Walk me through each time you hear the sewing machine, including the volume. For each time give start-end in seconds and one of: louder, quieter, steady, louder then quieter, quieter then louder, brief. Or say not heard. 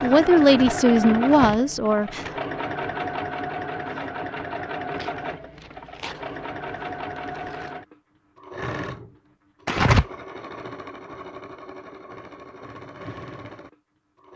0.0-14.3 quieter.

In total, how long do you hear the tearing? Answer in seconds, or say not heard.
5 s.